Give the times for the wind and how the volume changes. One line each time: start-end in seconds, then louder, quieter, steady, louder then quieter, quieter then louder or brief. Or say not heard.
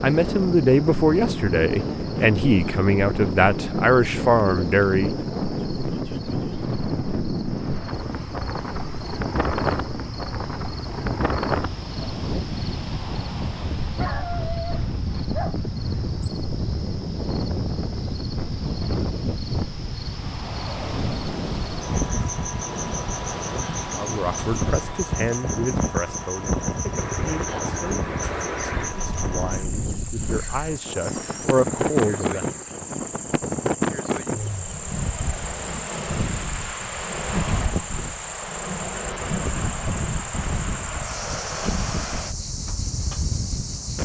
0.0-44.0 steady.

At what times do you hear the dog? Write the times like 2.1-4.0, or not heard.
13.9-15.7.